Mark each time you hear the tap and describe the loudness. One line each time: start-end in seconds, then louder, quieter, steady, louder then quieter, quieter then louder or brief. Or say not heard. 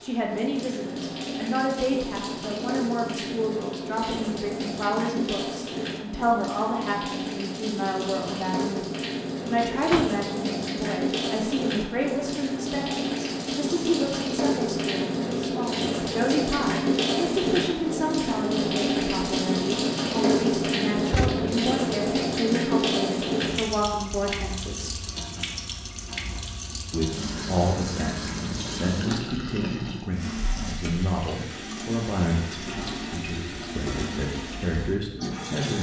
0.0-35.7 louder then quieter.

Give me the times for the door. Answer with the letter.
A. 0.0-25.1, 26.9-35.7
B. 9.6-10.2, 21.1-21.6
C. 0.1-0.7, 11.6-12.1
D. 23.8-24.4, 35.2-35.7
B.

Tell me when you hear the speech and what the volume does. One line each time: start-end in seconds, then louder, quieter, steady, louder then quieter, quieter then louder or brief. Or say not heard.
0.0-25.1 steady
26.9-35.7 steady.